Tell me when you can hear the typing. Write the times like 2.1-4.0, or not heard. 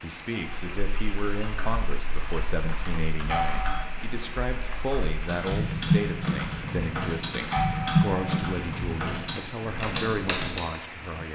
0.5-10.6.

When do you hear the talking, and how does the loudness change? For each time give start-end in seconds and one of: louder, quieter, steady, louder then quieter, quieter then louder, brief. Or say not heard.
0.0-11.3 steady.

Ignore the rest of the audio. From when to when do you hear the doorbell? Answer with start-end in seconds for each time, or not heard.
3.3-4.0, 7.5-8.3.